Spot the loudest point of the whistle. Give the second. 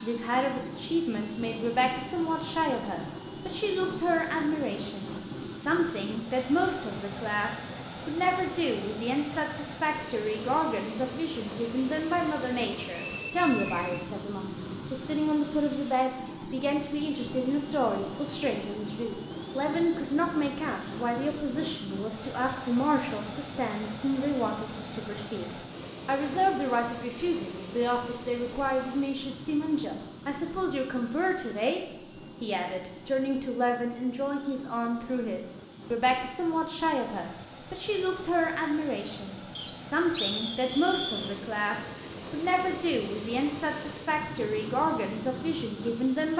40 s.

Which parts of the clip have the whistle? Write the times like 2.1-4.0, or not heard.
13.0-14.1, 39.5-41.4.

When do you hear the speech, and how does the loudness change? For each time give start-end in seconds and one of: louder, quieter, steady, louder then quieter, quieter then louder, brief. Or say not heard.
0.0-31.8 steady
32.4-46.3 steady.